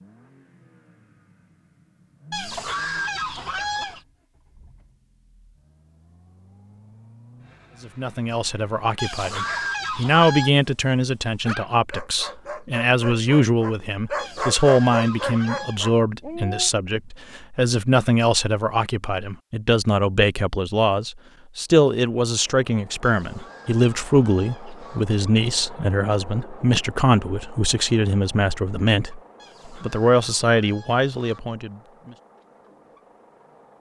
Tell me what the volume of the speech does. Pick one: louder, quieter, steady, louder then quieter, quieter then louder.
steady.